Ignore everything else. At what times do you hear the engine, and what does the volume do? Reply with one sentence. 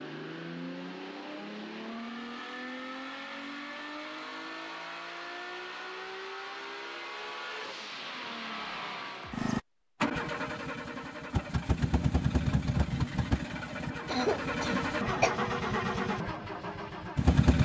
You can hear the engine from 0.0 to 17.5 s, getting louder.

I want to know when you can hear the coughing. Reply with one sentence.
You can hear the coughing from 14.1 to 15.3 s.